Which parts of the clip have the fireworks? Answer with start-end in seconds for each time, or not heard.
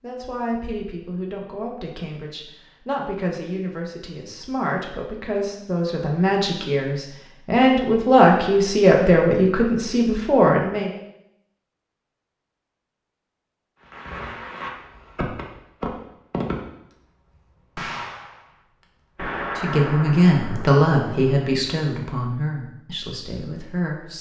13.8-16.9, 17.8-21.5.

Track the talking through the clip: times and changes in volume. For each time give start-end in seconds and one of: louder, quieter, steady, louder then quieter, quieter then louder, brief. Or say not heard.
0.0-10.9 louder
19.6-24.1 quieter.